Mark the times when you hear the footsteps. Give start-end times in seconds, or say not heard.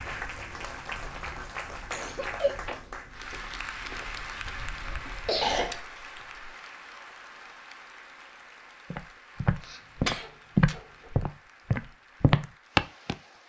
0.0-5.8, 8.9-13.2.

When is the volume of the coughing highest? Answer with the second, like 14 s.
5 s.